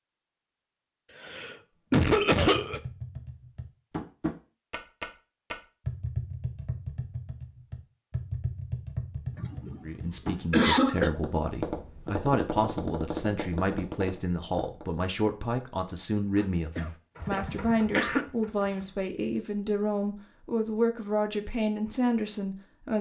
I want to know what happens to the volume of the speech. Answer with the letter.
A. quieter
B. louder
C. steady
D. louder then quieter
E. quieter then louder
C.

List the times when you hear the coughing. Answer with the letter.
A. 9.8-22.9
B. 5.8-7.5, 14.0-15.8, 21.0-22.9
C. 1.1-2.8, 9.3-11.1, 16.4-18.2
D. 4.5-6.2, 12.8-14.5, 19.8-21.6
C.